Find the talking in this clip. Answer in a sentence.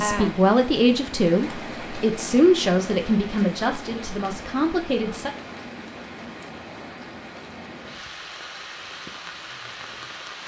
The talking can be heard from 0.0 to 5.3 s.